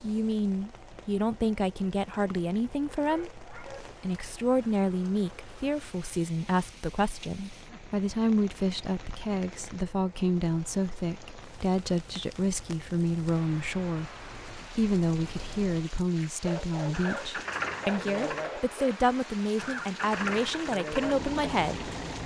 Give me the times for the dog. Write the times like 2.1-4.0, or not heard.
3.0-4.0, 16.4-19.0.